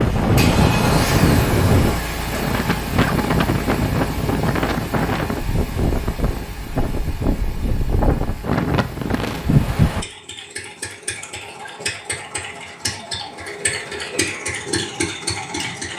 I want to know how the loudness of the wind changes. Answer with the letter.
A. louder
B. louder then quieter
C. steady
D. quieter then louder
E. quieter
D.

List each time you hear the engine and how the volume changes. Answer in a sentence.
The engine can be heard from 0.0 to 15.9 s, getting quieter then louder.